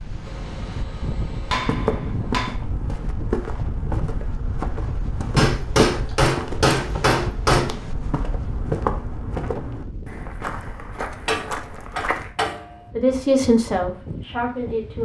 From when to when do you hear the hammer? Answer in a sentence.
You can hear the hammer from 0.2 to 2.5 s, from 5.3 to 7.7 s and from 10.9 to 12.8 s.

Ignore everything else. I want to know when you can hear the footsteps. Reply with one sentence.
The footsteps can be heard from 1.6 to 12.3 s.